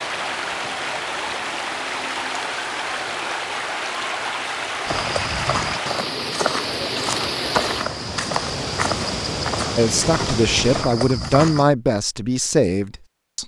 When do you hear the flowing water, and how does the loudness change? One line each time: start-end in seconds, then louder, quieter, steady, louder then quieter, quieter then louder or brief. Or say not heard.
0.0-10.8 steady.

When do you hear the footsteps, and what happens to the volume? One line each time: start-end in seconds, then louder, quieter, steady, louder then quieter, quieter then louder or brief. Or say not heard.
4.8-11.7 steady.